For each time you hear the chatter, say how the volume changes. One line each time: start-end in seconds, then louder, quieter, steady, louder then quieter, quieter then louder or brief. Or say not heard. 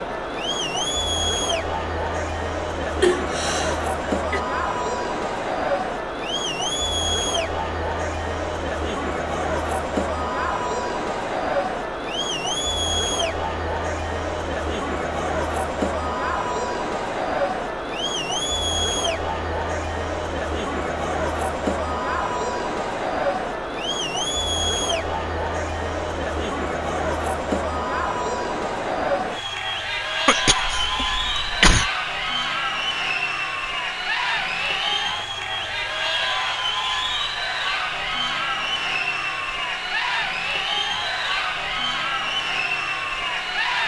0.0-43.8 steady.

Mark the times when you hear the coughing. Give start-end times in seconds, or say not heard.
3.0-4.4, 30.2-31.9.